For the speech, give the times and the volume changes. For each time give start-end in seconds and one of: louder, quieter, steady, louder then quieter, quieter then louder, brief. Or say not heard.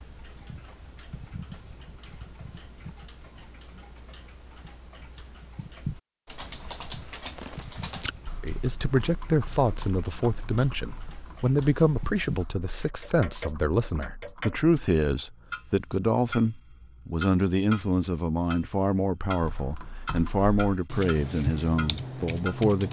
8.4-22.8 steady.